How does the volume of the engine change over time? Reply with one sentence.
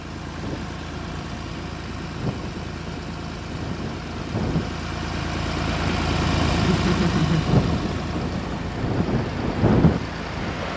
The loudness of the engine goes up, then down.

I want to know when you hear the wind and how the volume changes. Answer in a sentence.
You can hear the wind from 0.0 to 10.7 s, getting louder.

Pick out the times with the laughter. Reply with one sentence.
The laughter can be heard from 6.7 to 7.5 s.